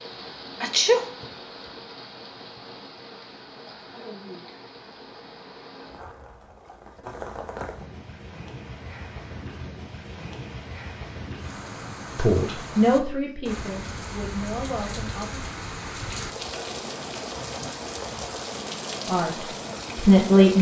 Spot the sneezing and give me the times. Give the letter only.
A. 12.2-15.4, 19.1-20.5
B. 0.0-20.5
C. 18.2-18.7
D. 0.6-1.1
D.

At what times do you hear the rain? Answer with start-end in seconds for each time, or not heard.
0.0-20.5.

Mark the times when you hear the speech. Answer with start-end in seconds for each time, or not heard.
12.2-15.4, 19.1-20.5.